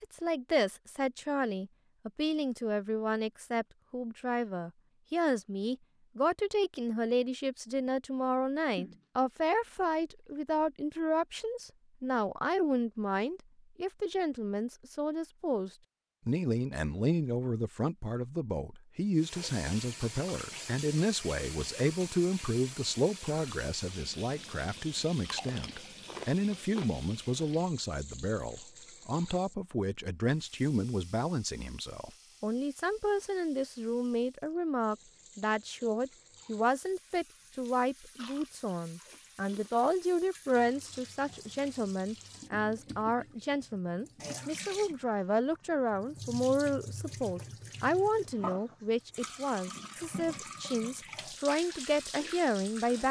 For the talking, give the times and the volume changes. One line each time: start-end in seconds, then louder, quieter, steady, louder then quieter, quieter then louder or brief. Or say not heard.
0.0-53.0 steady.